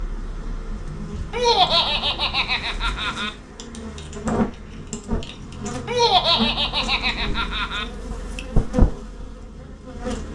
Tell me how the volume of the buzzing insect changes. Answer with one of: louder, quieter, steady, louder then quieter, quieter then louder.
louder.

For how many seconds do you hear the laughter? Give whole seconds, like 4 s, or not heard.
4 s.